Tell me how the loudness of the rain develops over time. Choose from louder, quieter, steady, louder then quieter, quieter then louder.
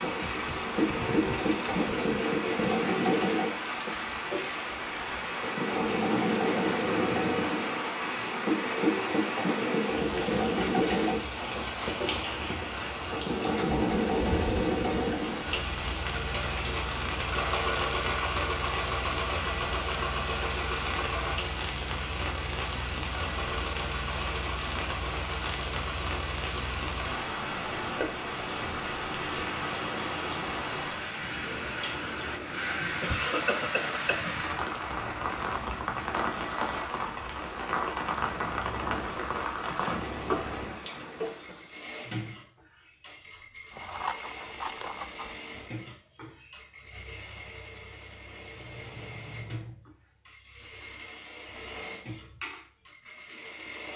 steady.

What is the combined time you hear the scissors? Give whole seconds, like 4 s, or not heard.
2 s.